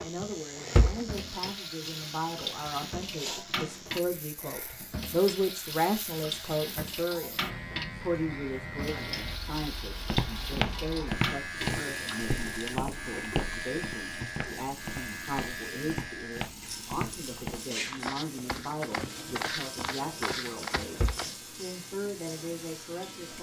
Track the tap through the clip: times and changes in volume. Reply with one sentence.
The tap can be heard from 0.0 to 23.3 s, getting quieter.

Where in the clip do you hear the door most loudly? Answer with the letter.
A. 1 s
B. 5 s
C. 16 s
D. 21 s
A.